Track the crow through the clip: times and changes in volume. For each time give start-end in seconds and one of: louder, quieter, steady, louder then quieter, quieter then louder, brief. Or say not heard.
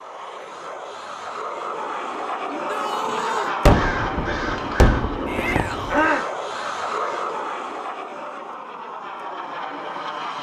3.0-7.3 louder then quieter.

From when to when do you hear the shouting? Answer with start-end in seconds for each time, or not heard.
2.5-3.5, 5.2-6.0.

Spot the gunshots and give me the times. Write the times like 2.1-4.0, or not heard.
3.6-6.0.